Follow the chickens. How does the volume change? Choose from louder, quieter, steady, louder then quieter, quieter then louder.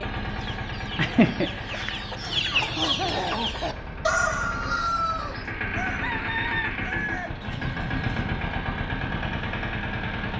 quieter.